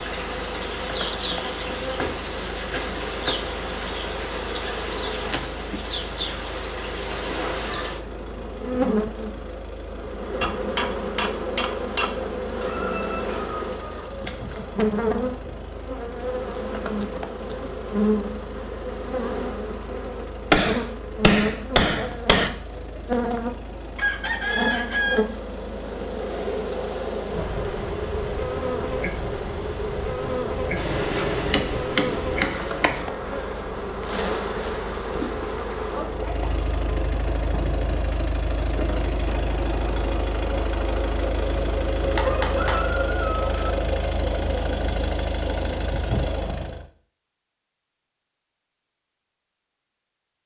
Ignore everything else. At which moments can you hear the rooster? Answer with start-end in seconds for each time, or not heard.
12.6-14.6, 23.9-25.2, 42.2-43.5.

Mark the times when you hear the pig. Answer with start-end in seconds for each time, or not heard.
not heard.